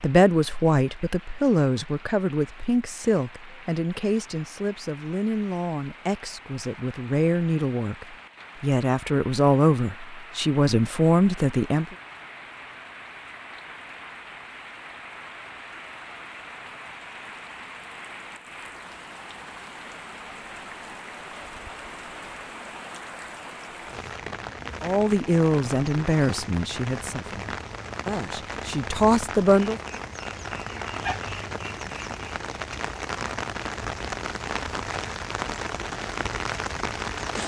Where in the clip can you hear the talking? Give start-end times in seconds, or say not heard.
0.0-11.8, 24.8-29.8.